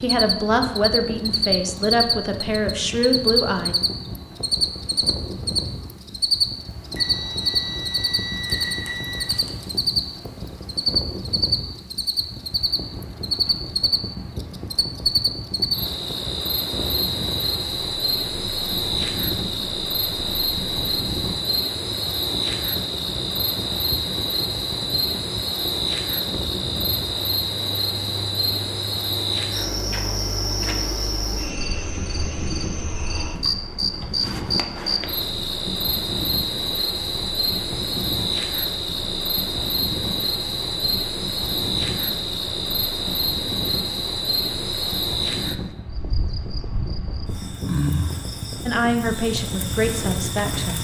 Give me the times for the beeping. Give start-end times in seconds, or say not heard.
7.0-9.7.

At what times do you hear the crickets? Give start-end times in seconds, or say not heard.
0.0-50.7.